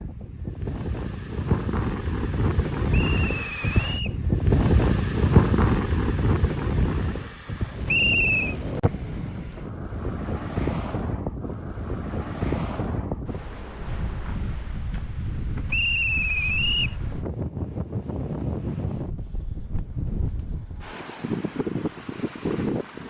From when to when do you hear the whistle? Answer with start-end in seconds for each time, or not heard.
2.9-4.2, 7.8-8.6, 15.7-16.9.